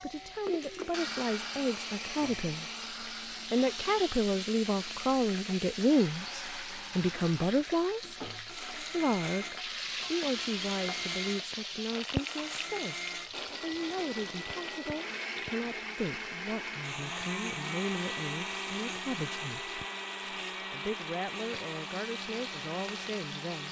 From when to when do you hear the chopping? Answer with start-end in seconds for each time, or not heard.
not heard.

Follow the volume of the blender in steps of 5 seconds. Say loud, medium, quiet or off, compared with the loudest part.
loud, medium, loud, loud, loud.